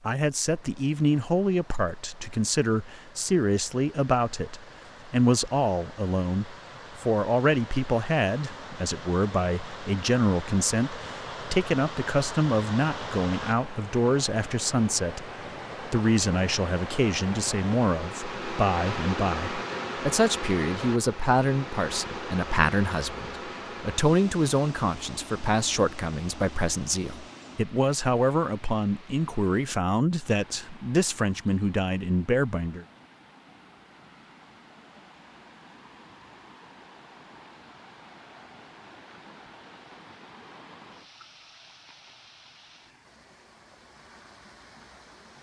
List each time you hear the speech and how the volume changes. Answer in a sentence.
You can hear the speech from 0.1 to 32.9 s, at a steady volume.